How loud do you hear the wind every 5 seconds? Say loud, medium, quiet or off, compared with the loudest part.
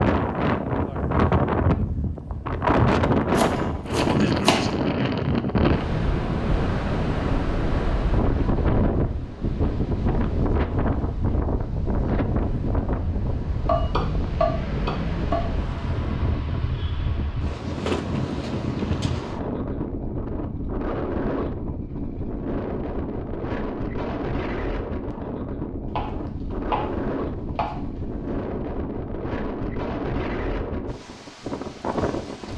loud, loud, medium, medium, medium, medium, medium.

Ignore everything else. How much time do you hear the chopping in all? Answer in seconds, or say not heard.
6 s.